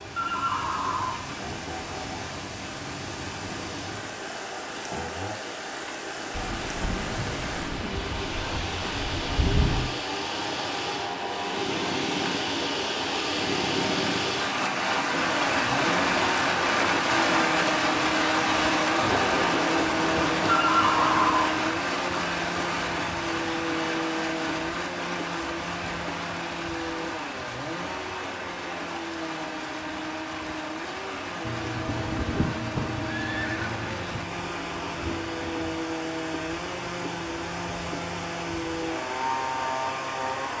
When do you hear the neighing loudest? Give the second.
21 s.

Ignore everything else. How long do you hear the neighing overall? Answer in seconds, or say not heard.
5 s.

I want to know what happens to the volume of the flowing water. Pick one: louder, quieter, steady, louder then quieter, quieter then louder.
louder then quieter.